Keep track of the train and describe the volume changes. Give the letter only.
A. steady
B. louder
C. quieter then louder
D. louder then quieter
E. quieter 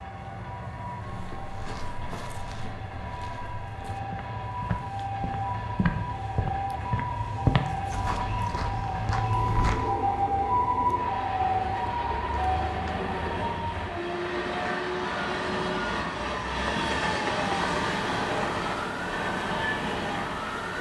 B.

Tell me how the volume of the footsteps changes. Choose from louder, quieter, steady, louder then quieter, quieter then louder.
louder then quieter.